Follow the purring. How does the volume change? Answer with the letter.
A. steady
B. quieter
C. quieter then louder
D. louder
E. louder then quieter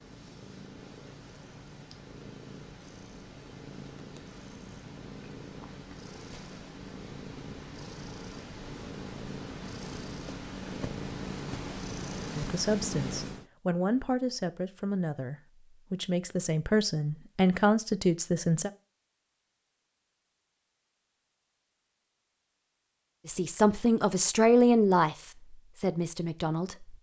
D.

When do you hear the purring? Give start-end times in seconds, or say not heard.
0.0-13.4.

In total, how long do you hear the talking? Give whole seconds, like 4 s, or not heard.
10 s.